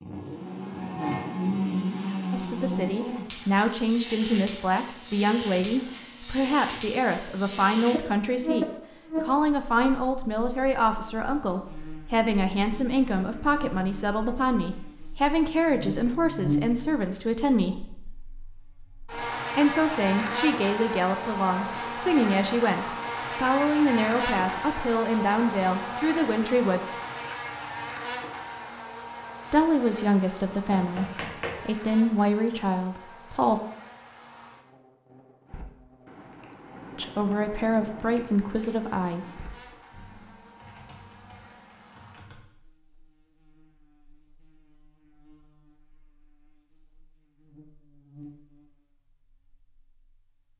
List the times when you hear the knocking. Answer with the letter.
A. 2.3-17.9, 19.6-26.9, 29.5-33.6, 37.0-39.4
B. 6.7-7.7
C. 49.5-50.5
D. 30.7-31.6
D.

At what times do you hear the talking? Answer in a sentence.
You can hear the talking from 2.3 to 17.9 s, from 19.6 to 26.9 s, from 29.5 to 33.6 s and from 37.0 to 39.4 s.